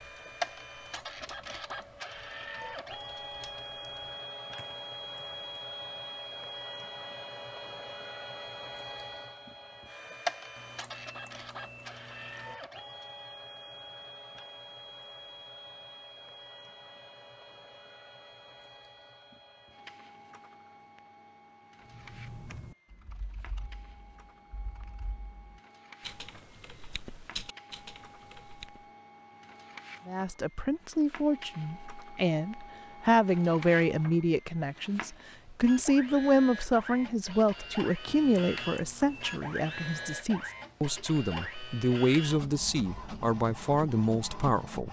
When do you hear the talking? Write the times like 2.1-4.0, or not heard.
30.1-44.8.